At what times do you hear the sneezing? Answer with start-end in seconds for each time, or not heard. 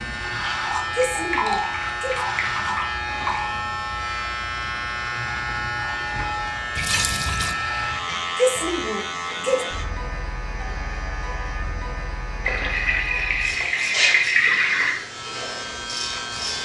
0.9-2.2, 8.3-9.7.